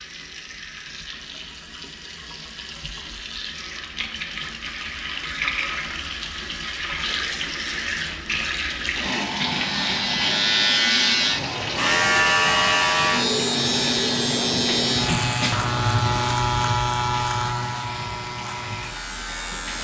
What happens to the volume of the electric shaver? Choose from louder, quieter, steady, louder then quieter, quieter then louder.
quieter.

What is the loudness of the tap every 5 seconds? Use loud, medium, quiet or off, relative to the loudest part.
medium, loud, loud, medium.